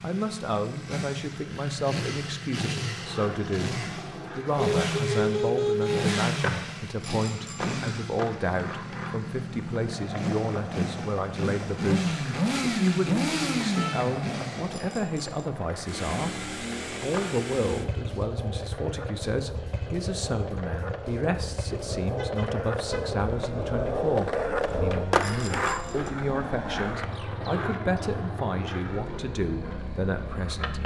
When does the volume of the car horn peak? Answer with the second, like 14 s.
6 s.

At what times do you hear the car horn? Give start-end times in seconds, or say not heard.
4.8-6.1, 13.8-14.2, 22.1-23.1.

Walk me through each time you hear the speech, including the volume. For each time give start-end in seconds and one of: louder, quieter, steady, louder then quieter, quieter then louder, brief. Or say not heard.
0.0-30.8 steady.